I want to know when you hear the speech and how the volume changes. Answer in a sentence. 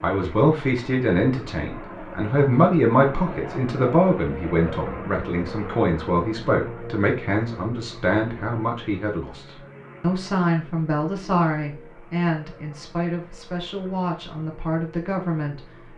You can hear the speech from 0.0 to 15.7 s, getting quieter.